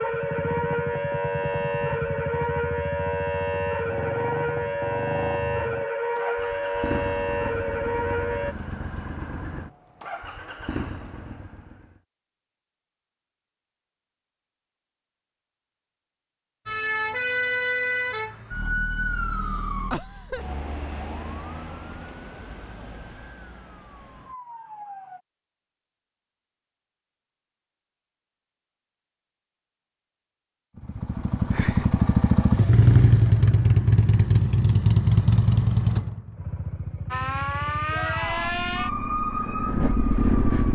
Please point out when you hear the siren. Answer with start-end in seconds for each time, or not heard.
0.0-8.6, 16.6-25.2, 37.1-40.6.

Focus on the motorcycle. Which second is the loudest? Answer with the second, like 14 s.
33 s.